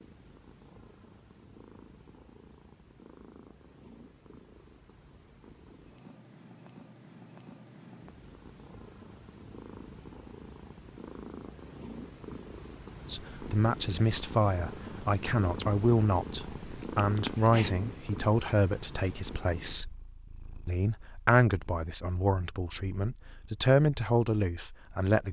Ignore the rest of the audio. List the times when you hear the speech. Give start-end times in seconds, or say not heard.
13.1-19.9, 20.6-25.2.